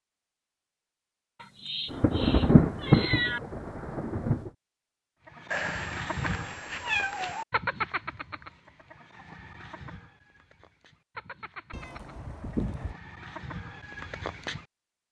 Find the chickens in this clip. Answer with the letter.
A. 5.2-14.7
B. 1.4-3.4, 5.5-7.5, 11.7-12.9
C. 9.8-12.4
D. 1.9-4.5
A.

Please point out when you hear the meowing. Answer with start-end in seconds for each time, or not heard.
1.4-3.4, 5.5-7.5, 11.7-12.9.